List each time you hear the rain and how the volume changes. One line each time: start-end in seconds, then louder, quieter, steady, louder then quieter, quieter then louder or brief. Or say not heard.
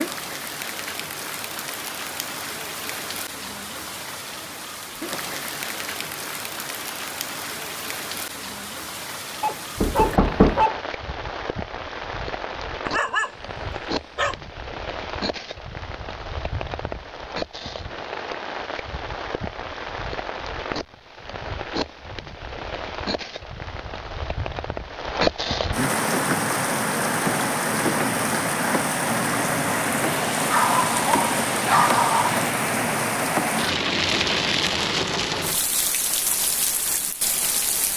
0.0-37.9 louder.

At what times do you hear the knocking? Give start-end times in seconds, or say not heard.
9.8-10.7.